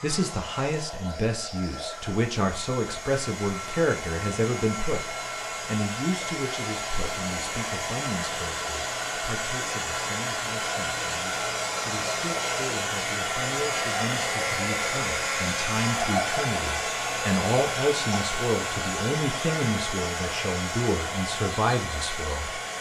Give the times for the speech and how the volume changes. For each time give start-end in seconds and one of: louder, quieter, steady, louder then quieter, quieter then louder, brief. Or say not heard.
0.0-22.6 quieter then louder.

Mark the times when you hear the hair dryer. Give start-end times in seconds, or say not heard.
0.0-22.7.